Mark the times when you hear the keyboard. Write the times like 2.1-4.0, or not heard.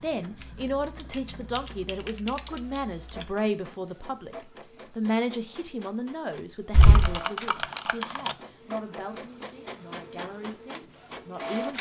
0.4-3.3, 6.7-8.3.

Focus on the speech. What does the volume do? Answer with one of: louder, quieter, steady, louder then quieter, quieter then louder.
quieter.